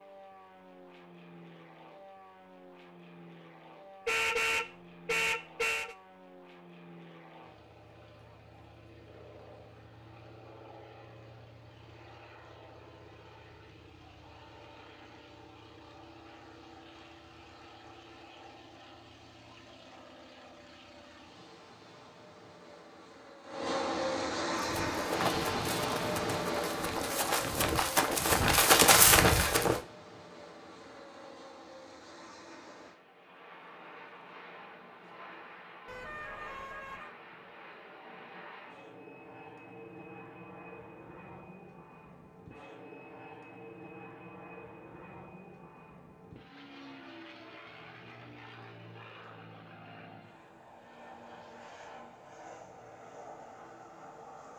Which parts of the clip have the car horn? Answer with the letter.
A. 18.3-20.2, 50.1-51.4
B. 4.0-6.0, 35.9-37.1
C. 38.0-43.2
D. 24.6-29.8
B.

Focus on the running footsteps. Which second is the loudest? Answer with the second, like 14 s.
29 s.